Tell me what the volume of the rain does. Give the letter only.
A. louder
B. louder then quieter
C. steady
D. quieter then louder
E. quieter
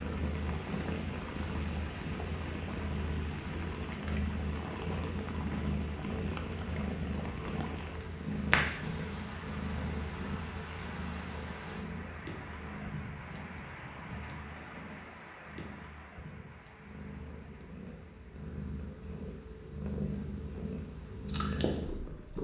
E.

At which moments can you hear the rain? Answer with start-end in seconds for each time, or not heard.
0.0-22.3.